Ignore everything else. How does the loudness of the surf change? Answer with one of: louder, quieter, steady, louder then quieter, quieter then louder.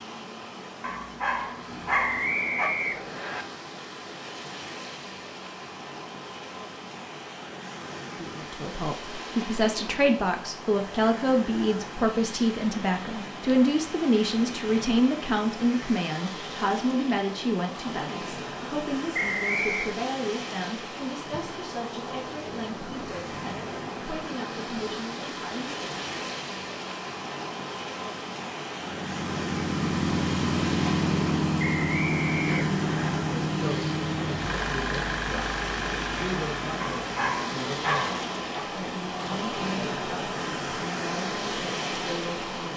louder.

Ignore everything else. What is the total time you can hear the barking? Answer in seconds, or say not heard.
4 s.